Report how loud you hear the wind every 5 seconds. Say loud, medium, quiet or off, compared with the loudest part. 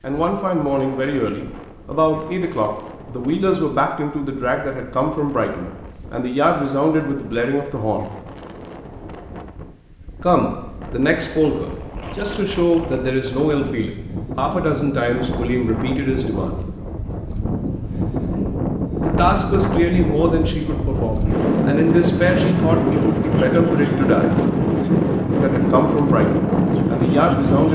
quiet, quiet, quiet, medium, loud, loud.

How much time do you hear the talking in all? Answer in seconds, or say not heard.
22 s.